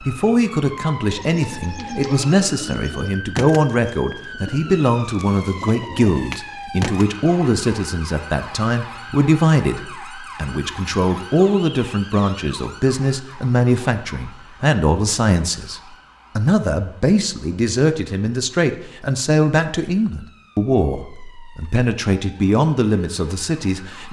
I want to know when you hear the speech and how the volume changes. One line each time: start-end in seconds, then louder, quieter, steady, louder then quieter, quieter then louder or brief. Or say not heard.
0.0-24.0 steady.